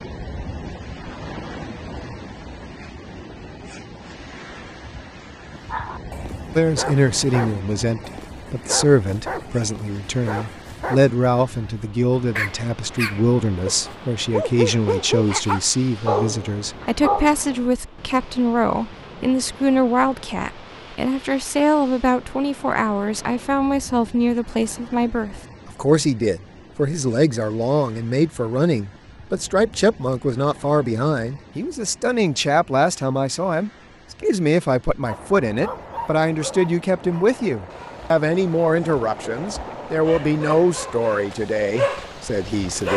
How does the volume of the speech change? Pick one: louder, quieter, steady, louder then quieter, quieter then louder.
steady.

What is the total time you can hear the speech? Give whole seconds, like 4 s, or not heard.
36 s.